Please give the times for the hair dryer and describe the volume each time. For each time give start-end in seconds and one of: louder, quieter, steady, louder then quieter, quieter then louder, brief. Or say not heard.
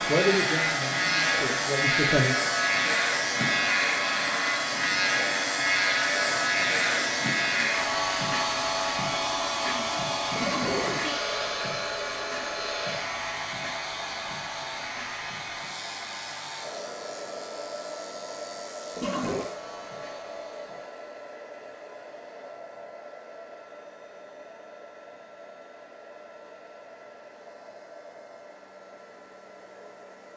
0.0-30.3 quieter.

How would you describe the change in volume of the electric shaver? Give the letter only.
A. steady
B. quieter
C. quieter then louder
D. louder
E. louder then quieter
B.